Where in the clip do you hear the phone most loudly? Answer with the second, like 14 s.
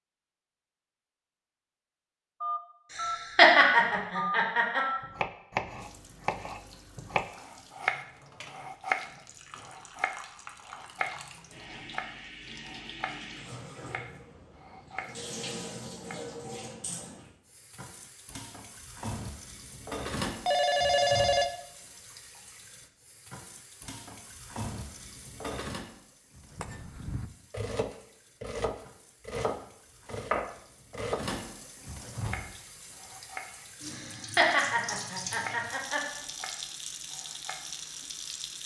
21 s.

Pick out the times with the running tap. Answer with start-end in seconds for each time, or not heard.
5.8-38.6.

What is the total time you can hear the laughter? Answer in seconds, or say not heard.
4 s.